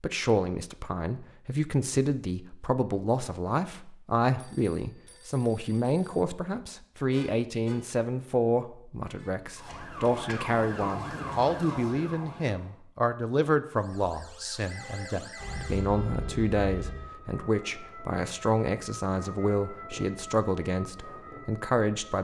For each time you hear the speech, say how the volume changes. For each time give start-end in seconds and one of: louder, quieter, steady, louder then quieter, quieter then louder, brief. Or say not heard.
0.0-22.2 steady.